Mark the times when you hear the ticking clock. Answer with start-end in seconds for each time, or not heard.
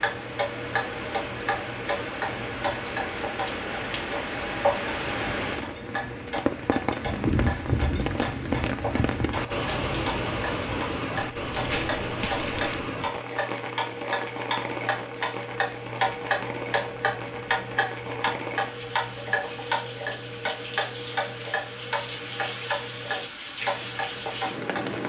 0.0-25.0.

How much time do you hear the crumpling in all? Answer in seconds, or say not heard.
2 s.